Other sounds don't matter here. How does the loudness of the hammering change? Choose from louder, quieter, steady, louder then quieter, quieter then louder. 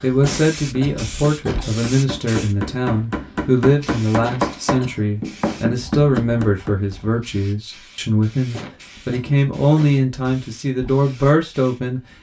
louder.